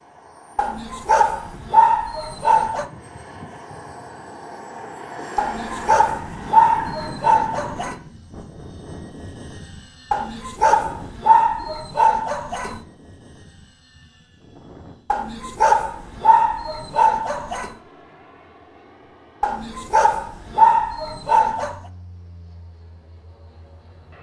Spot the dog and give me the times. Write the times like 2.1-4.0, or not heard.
0.6-2.9, 5.3-8.0, 10.1-12.8, 15.1-17.8, 19.4-21.8.